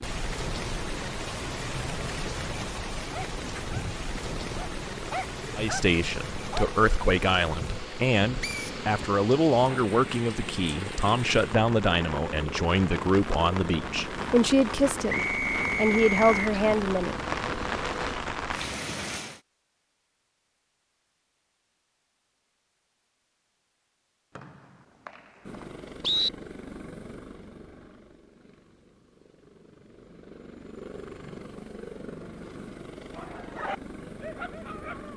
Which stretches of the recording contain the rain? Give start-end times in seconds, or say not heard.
0.0-19.4.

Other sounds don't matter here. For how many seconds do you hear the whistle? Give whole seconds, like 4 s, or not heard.
4 s.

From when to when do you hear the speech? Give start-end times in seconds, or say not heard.
5.5-17.1.